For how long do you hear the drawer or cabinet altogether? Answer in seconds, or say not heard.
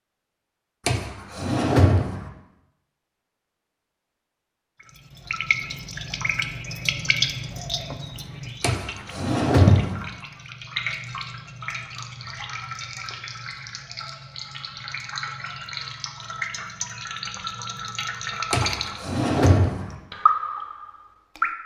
4 s.